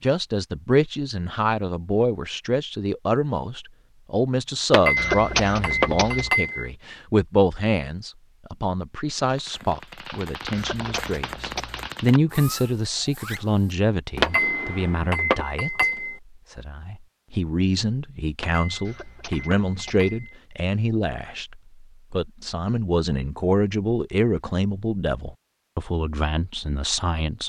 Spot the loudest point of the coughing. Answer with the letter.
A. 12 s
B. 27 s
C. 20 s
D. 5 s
D.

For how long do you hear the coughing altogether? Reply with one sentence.
You can hear the coughing for 4 seconds altogether.